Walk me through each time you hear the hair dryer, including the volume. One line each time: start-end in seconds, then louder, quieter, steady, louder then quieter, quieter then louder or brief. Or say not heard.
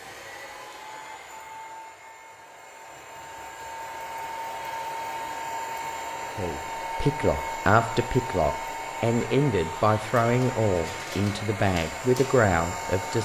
0.0-13.2 louder.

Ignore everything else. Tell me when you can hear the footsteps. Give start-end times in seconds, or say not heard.
not heard.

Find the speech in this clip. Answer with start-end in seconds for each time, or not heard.
6.3-13.2.